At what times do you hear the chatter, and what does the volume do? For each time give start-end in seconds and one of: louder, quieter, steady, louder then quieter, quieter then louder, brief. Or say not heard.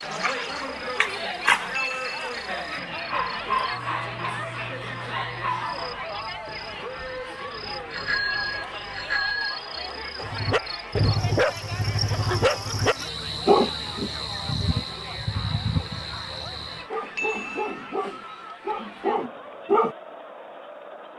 0.0-21.1 quieter.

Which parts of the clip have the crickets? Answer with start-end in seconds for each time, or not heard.
0.1-16.9.